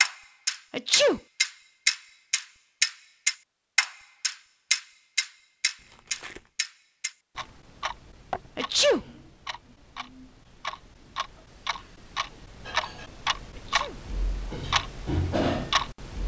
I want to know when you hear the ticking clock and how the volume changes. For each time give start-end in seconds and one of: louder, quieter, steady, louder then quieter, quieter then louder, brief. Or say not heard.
0.0-16.2 quieter then louder.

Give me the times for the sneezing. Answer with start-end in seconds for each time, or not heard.
0.7-1.2, 8.6-9.1, 13.5-14.0.